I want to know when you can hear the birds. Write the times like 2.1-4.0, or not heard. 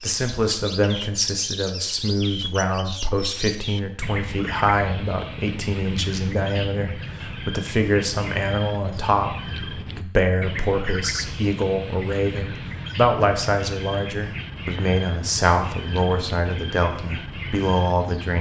0.0-18.3.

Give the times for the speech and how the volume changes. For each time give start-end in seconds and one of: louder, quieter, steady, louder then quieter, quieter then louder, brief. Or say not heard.
0.0-18.3 steady.